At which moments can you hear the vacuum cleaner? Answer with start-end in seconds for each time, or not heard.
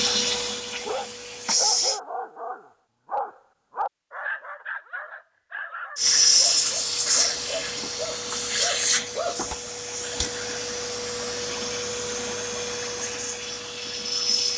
0.0-2.0, 6.0-14.5.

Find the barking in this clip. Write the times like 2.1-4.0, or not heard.
0.8-9.6.